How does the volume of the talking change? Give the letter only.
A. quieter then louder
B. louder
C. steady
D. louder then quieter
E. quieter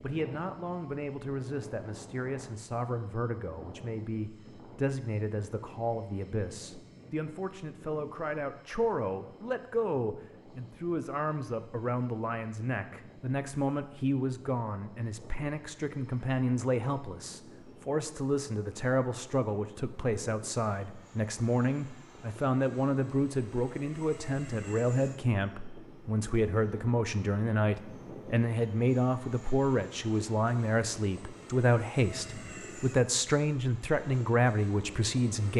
B.